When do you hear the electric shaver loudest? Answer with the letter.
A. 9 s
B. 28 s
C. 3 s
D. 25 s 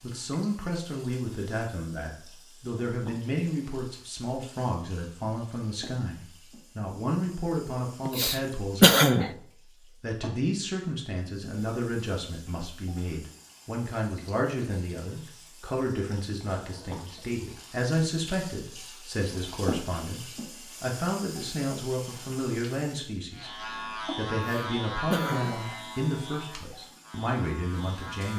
D.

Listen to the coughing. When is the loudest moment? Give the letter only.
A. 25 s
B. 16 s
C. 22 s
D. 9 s
D.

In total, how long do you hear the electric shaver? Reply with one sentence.
The electric shaver can be heard for 5 seconds in total.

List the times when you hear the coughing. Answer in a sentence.
You can hear the coughing from 8.1 to 9.3 s and from 24.4 to 25.8 s.